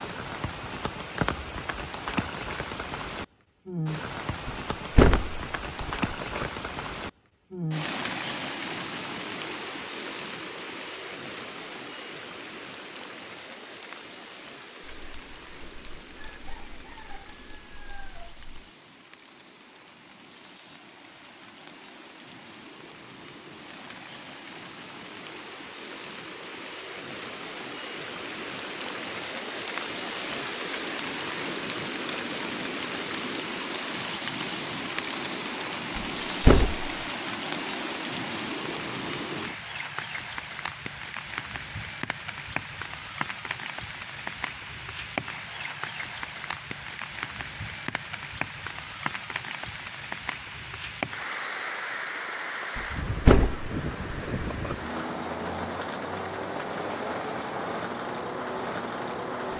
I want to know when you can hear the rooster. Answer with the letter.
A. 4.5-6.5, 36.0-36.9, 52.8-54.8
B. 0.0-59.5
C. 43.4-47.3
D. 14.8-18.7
D.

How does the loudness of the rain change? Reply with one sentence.
The volume of the rain goes down, then up.